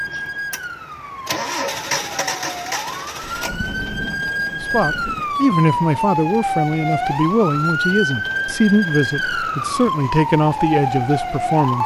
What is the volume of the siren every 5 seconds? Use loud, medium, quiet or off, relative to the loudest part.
medium, loud, loud.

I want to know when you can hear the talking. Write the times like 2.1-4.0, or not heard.
4.5-11.8.